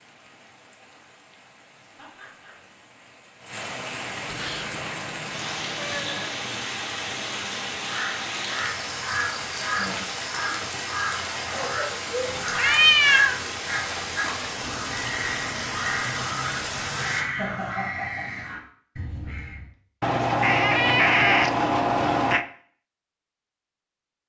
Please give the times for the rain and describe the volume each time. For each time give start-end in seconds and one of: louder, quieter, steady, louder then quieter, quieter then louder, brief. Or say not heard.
0.0-17.2 louder.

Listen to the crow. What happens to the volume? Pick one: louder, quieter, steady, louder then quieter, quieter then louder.
steady.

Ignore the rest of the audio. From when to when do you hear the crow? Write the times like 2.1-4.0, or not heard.
7.8-19.7.